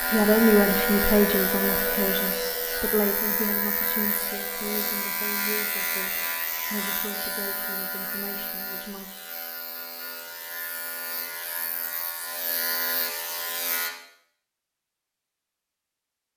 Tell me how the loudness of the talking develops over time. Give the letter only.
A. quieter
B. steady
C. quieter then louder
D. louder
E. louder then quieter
A.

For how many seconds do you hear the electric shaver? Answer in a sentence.
The electric shaver can be heard for 14 seconds in total.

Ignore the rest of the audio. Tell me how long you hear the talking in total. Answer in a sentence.
You can hear the talking for 9 seconds altogether.